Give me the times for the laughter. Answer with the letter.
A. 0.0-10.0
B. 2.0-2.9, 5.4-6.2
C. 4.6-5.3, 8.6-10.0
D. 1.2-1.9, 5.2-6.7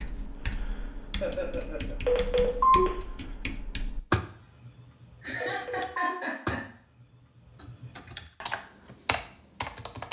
D.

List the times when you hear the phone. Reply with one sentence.
You can hear the phone from 2.0 to 2.9 s and from 5.4 to 6.2 s.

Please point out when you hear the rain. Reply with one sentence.
The rain can't be heard in this clip.